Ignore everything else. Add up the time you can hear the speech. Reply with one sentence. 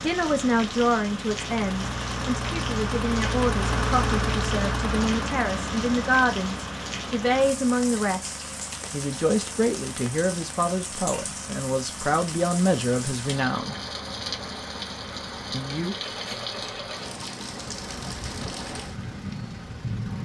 The speech can be heard for 14 seconds in total.